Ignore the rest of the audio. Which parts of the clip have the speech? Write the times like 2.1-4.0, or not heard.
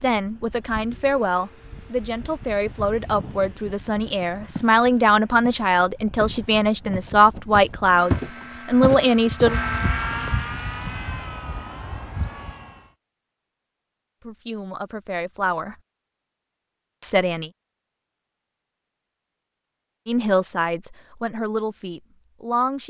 0.0-9.6, 14.2-15.8, 17.0-17.5, 20.1-22.8.